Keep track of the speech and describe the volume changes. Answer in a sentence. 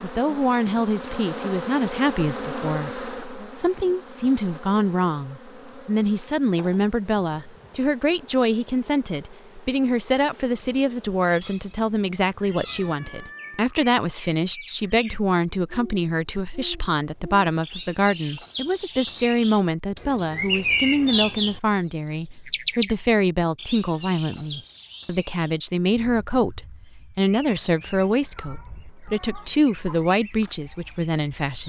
The loudness of the speech stays about the same.